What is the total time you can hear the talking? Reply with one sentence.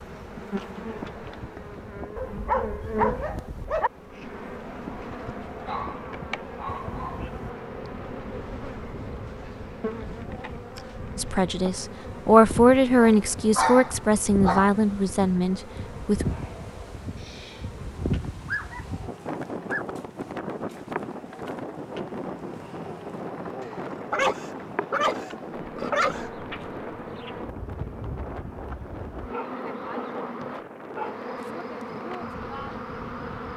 You can hear the talking for 5 seconds altogether.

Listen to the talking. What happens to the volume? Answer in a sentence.
The volume of the talking goes down.